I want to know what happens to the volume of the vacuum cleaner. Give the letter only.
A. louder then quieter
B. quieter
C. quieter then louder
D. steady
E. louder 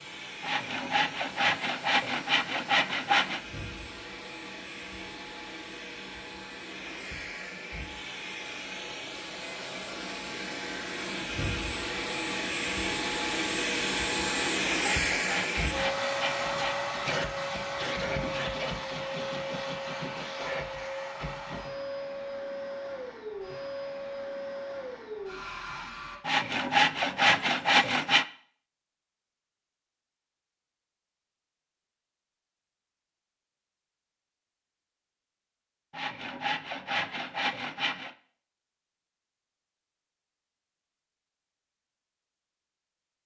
A.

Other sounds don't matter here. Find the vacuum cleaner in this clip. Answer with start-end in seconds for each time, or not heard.
0.0-26.2.